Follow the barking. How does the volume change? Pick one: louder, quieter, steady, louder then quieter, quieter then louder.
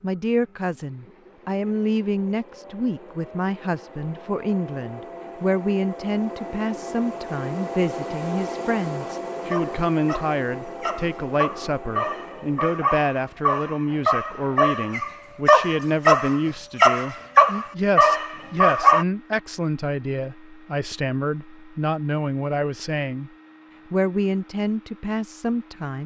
louder.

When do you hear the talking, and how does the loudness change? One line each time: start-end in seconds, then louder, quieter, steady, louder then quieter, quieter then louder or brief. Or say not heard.
0.0-23.3 steady
23.9-26.0 brief.